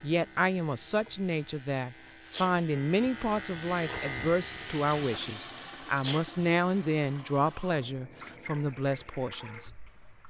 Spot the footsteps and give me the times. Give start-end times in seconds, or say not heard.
not heard.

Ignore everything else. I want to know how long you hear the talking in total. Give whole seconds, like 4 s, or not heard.
10 s.